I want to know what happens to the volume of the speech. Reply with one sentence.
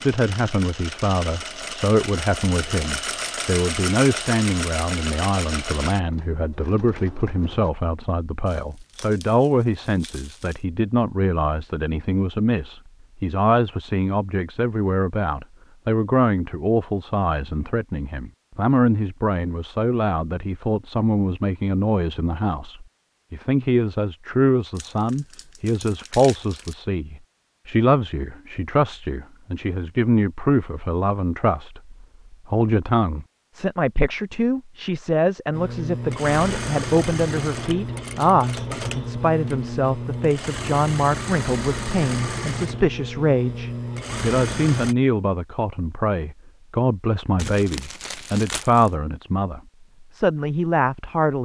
The loudness of the speech stays about the same.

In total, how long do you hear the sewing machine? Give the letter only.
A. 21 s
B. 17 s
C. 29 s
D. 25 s
B.